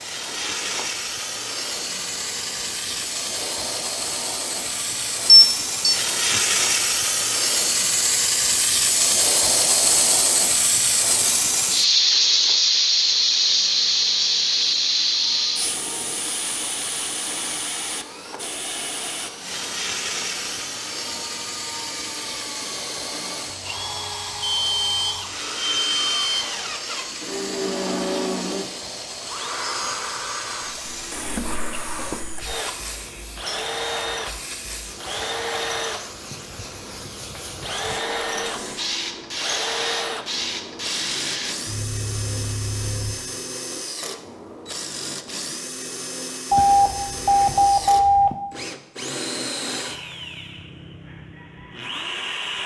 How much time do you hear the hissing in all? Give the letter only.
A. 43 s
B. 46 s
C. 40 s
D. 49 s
A.